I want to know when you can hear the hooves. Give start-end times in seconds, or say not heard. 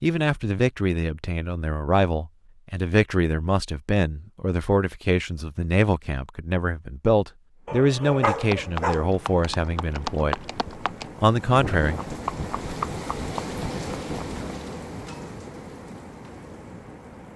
8.2-14.6.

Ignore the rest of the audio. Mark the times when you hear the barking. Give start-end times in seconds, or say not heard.
7.7-9.1.